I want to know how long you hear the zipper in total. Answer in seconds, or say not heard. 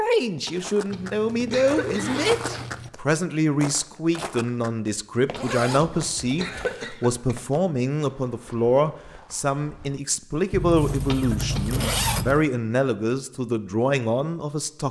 5 s.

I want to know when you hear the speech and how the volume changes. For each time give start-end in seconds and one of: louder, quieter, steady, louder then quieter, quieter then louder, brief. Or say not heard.
0.0-14.8 steady.